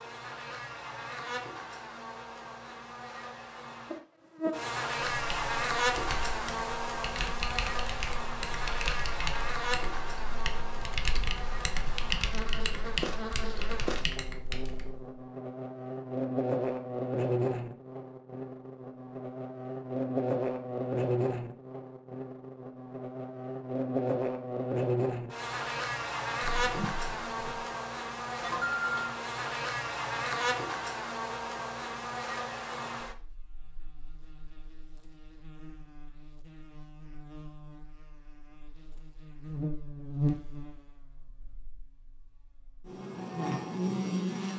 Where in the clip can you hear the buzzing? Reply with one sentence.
The buzzing can be heard from 0.0 to 44.5 s.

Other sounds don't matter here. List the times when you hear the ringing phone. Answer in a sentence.
You can hear the ringing phone from 28.4 to 29.1 s.